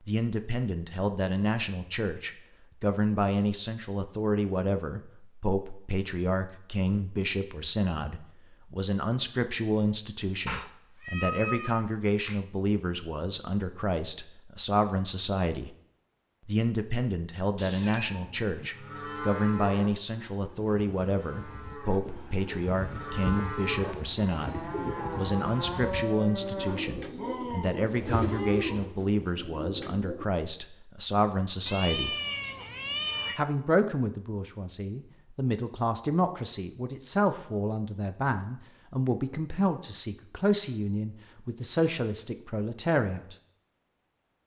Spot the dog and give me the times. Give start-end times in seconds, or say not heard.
not heard.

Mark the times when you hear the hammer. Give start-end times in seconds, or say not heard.
not heard.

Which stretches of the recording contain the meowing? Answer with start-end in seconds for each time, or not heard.
10.4-12.4, 17.6-18.7, 31.6-33.4.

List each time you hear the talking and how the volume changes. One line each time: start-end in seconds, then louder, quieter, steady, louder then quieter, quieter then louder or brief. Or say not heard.
0.1-15.7 steady
16.4-32.1 steady
33.4-43.4 steady.